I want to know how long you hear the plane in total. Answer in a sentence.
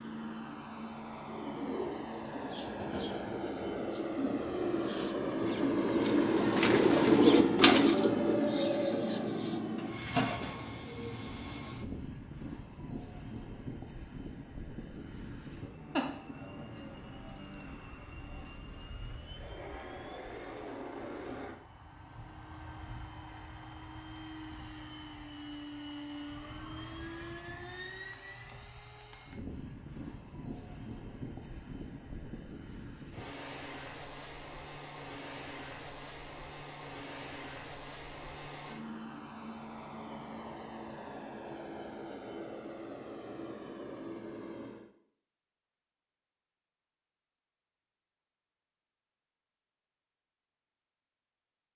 You can hear the plane for 45 seconds altogether.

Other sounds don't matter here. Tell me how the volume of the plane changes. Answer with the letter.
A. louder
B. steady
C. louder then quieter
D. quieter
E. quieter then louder
D.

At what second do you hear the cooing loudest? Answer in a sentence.
The volume of the cooing peaks at 7 seconds.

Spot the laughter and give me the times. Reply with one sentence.
You can hear the laughter from 15.5 to 16.8 s.